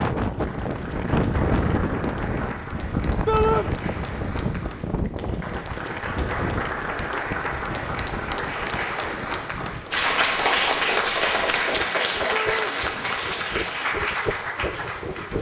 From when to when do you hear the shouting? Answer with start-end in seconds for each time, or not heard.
3.2-3.7, 12.3-12.8.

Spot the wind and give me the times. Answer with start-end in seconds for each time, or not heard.
0.0-15.3.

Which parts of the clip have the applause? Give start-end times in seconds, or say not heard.
0.1-15.3.